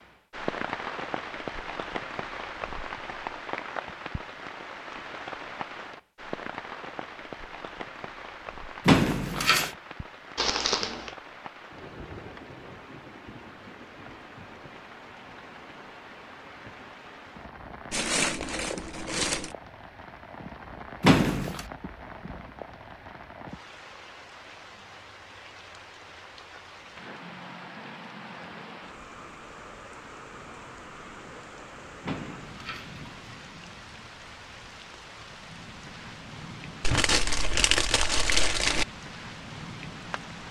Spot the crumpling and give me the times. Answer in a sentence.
The crumpling can be heard from 10.3 to 11.2 s, from 17.9 to 19.6 s and from 36.8 to 38.9 s.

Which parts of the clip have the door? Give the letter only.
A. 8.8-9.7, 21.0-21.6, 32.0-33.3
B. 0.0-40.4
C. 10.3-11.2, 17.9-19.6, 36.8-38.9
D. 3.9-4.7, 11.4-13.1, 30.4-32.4
A.